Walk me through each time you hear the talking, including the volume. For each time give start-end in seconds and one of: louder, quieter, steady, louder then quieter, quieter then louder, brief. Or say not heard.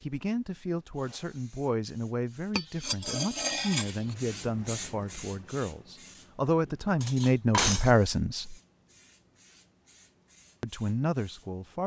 0.0-8.6 louder
10.6-11.8 brief.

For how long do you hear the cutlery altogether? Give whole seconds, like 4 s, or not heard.
2 s.